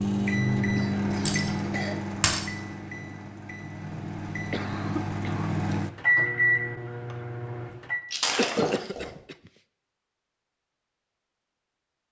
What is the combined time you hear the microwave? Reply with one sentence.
You can hear the microwave for 8 seconds altogether.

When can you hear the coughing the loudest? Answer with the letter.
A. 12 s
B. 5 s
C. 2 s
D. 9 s
D.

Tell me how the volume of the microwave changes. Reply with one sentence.
The volume of the microwave goes down, then up.